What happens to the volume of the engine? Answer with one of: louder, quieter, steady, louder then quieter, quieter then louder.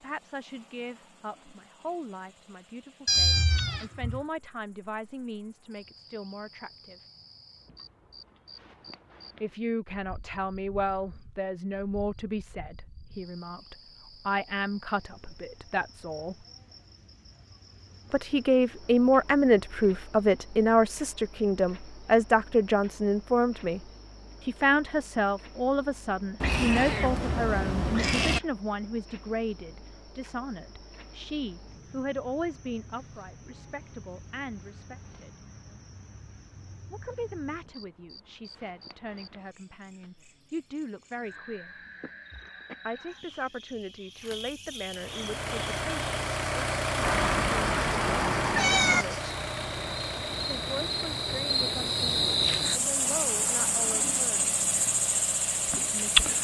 quieter.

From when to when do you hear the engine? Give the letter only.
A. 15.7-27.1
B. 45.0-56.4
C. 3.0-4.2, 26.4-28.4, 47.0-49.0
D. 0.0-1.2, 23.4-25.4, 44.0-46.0
B.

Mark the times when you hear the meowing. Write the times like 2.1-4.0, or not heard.
3.0-4.2, 26.4-28.4, 47.0-49.0.